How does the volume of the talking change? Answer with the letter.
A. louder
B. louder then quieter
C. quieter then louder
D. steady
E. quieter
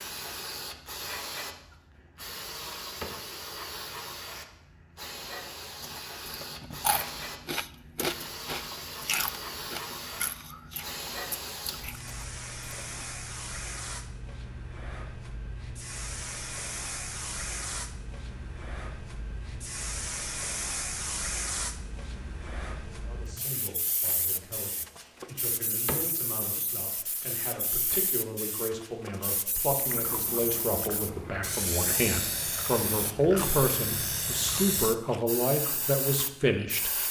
A.